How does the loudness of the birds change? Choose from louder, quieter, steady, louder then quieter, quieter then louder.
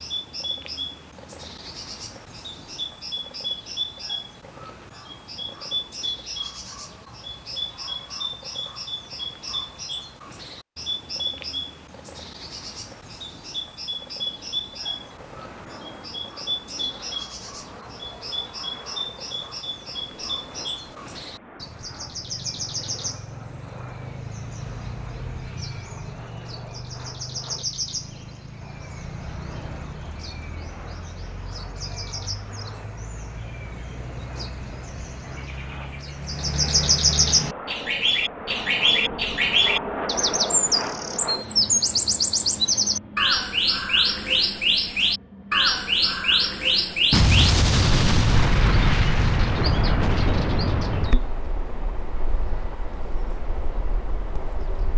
louder.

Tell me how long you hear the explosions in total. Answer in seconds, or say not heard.
4 s.